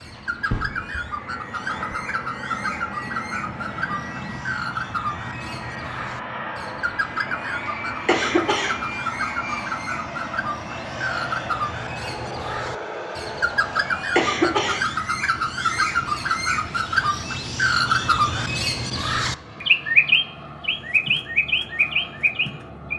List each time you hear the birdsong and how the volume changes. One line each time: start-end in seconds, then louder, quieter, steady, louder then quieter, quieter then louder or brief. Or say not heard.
0.0-22.9 louder.